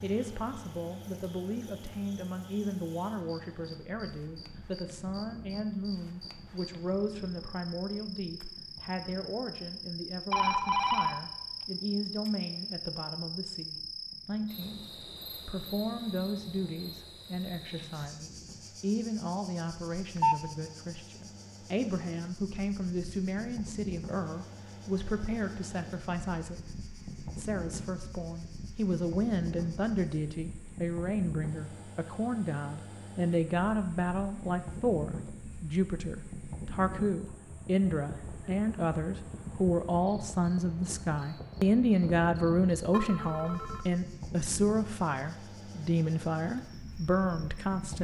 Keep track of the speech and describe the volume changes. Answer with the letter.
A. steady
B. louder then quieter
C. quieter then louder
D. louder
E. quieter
D.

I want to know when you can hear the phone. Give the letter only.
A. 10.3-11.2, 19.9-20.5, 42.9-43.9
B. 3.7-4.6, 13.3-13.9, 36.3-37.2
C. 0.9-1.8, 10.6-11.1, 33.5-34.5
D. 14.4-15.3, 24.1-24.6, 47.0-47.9
A.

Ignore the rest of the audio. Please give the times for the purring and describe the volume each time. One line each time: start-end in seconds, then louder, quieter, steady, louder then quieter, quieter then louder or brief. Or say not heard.
not heard.